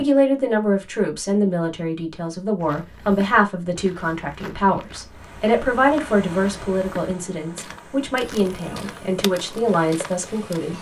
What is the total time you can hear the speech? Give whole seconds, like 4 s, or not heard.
11 s.